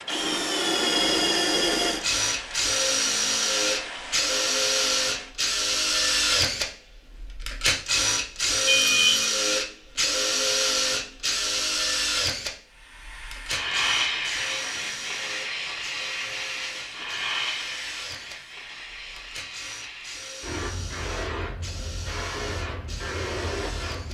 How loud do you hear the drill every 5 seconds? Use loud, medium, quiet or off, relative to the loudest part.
loud, loud, loud, quiet, quiet.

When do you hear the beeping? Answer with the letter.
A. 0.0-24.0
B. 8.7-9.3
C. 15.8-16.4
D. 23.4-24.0
B.